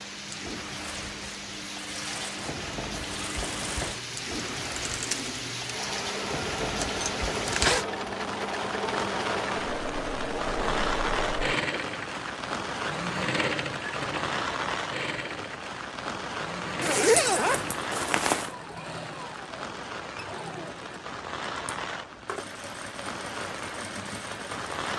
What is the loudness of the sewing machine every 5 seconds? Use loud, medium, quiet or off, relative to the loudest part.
medium, loud, loud, medium, medium.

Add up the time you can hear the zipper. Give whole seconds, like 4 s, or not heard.
3 s.